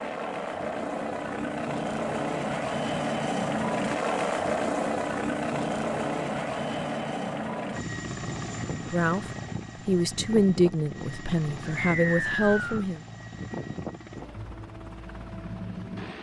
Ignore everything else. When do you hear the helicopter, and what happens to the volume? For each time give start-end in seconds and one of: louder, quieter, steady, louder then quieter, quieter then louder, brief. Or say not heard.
0.0-16.1 quieter.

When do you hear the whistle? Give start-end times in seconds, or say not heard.
11.8-12.8.